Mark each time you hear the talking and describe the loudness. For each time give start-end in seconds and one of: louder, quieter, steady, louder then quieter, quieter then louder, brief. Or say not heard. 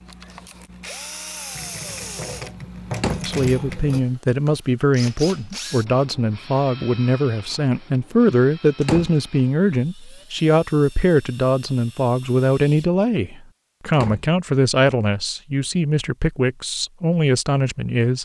3.2-18.2 steady.